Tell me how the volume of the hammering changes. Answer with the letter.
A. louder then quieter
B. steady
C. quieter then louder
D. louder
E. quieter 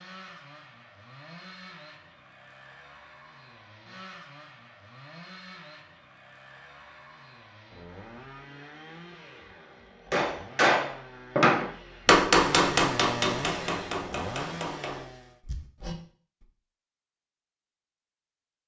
E.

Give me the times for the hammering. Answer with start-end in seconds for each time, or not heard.
10.1-16.4.